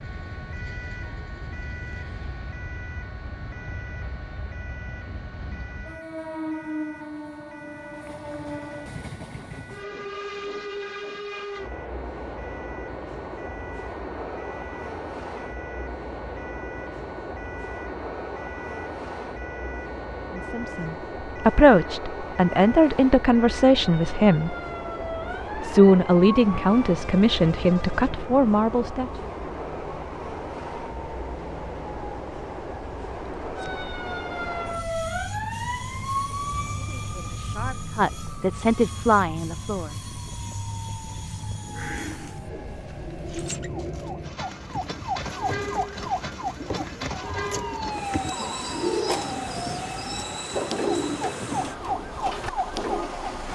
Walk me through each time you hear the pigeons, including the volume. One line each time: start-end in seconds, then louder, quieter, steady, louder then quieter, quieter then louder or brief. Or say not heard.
41.6-53.1 louder.